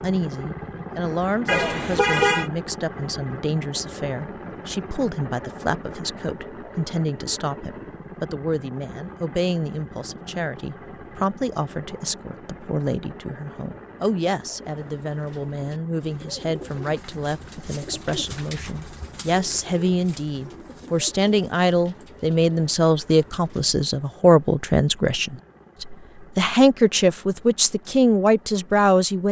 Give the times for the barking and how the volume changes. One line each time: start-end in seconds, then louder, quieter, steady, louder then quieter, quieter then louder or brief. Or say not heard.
not heard.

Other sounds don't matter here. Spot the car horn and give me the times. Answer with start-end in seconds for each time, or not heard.
1.4-2.5.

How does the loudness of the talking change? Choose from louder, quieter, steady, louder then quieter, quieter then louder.
louder.